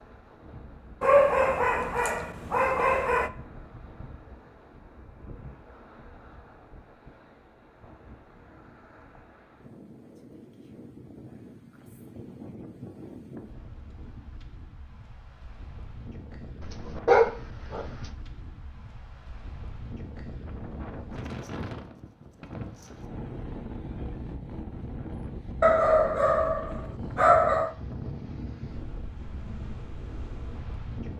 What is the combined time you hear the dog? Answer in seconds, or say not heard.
6 s.